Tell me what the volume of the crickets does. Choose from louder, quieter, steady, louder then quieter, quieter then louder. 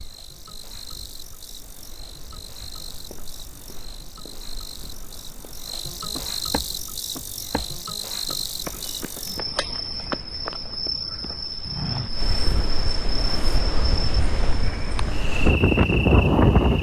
louder.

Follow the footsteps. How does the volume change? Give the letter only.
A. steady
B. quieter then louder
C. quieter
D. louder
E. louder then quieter
D.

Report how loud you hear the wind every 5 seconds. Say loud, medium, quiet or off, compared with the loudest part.
quiet, quiet, quiet, loud.